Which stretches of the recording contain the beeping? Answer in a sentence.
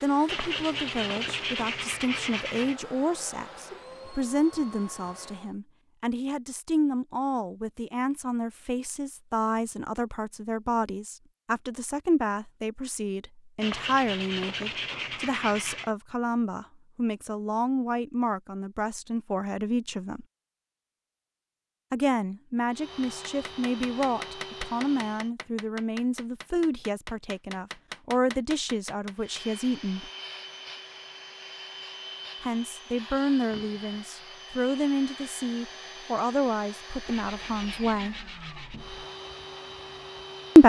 The beeping can't be heard in this clip.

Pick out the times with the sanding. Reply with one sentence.
You can hear the sanding from 0.2 to 2.8 s, from 13.6 to 15.9 s and from 37.0 to 39.0 s.